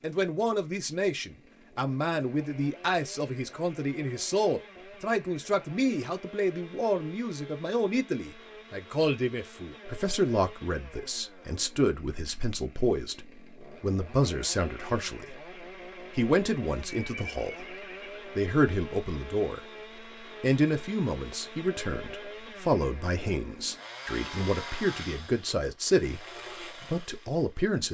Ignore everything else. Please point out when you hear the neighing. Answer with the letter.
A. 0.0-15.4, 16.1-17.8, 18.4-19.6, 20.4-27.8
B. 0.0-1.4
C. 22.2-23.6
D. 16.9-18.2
D.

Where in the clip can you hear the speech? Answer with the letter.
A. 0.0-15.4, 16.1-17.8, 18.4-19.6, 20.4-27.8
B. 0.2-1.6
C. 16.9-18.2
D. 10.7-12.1
A.